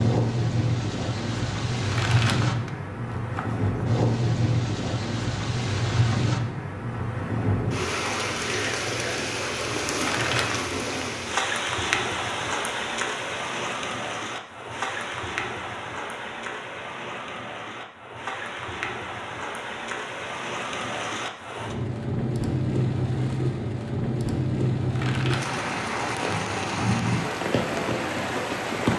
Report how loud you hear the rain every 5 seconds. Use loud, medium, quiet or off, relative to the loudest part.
loud, loud, loud, medium, loud, loud.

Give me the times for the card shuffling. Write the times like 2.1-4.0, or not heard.
1.9-3.9, 9.9-10.7, 24.9-25.6.